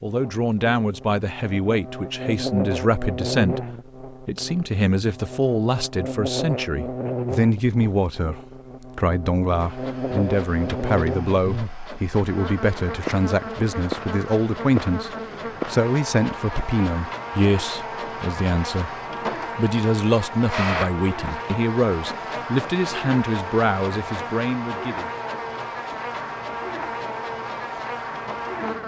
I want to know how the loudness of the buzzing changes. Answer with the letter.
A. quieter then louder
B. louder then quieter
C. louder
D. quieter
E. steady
E.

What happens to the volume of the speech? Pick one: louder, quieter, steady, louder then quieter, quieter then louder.
steady.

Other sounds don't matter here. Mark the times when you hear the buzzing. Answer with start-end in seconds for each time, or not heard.
0.1-28.8.